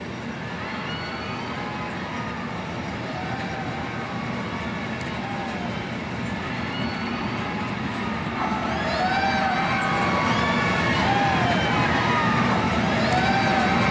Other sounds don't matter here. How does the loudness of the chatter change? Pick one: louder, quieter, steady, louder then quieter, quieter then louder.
louder.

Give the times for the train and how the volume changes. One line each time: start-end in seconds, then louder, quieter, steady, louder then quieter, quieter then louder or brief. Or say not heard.
0.0-13.8 louder.